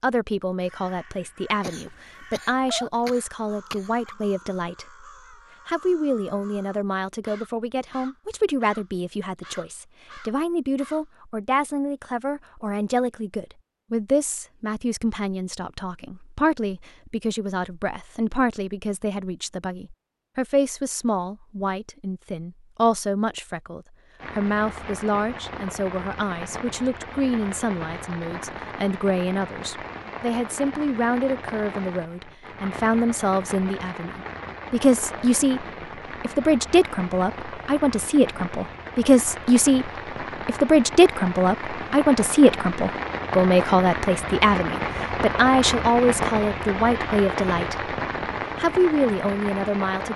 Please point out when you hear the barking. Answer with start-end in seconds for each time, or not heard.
not heard.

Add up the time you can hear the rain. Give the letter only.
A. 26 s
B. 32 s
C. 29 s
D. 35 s
A.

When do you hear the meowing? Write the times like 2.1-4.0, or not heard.
not heard.